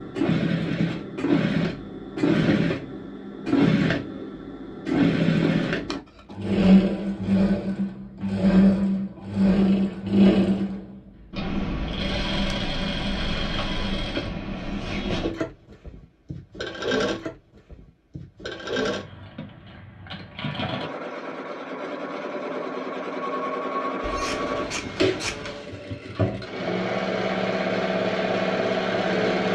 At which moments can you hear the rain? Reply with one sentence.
The rain can't be heard in this clip.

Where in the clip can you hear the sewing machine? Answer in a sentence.
You can hear the sewing machine from 0.0 to 29.4 s.